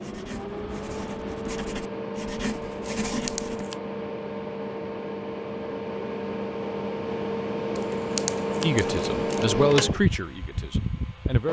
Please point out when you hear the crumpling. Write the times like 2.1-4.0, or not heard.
3.1-3.8, 7.8-9.5.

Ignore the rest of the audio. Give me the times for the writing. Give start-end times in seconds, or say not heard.
0.0-3.6.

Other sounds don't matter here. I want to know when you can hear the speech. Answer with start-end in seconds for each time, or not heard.
8.6-11.4.